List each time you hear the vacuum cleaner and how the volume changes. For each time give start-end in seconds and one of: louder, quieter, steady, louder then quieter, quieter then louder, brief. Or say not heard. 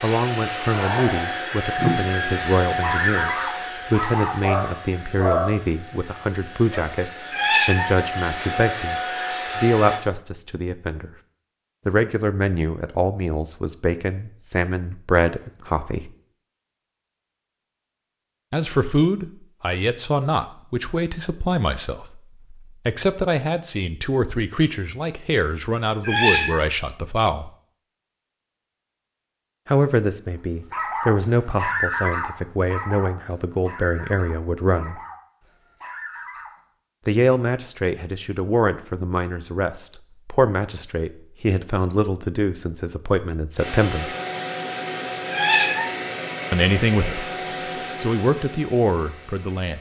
0.0-10.0 quieter then louder
43.5-49.7 quieter.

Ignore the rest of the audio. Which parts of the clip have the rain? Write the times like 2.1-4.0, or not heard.
not heard.